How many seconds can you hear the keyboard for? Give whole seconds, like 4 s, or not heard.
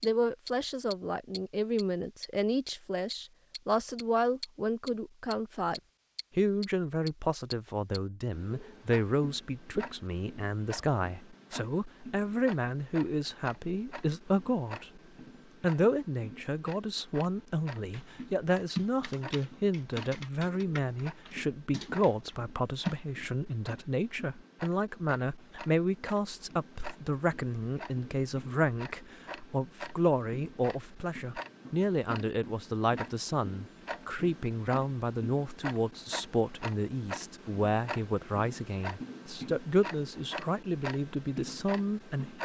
5 s.